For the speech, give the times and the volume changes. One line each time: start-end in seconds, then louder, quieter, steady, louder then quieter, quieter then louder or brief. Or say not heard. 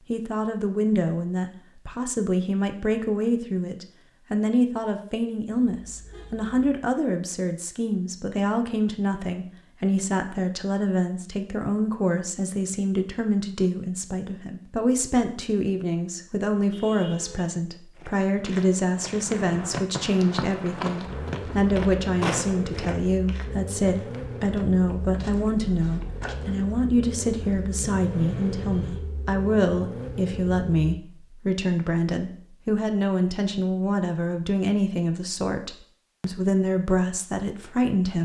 0.1-38.1 steady.